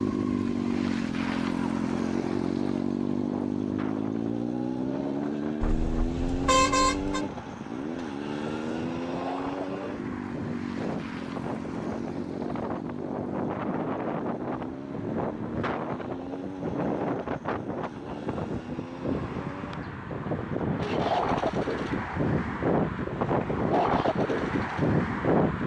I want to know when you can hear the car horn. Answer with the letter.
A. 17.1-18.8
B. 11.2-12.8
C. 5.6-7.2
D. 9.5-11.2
C.